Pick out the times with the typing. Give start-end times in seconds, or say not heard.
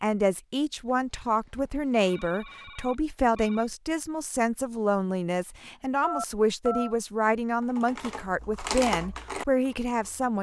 7.7-10.3.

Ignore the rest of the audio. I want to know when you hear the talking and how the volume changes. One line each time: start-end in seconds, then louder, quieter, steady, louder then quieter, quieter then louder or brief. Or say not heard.
0.0-10.3 steady.